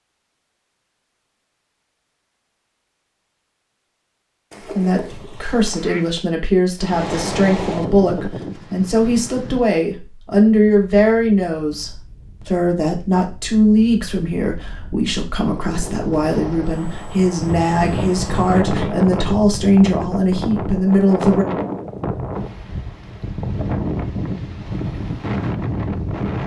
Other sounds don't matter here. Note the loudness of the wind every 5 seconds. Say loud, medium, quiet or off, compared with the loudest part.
off, loud, quiet, loud, loud, loud.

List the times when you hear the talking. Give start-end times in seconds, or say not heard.
4.8-21.4.